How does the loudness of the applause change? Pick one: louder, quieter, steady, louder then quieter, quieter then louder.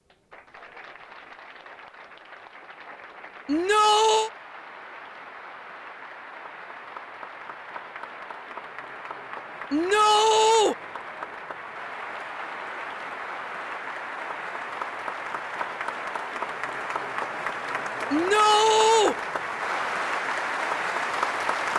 louder.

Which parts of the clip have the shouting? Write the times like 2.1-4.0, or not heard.
3.5-4.3, 9.7-10.8, 18.1-19.1.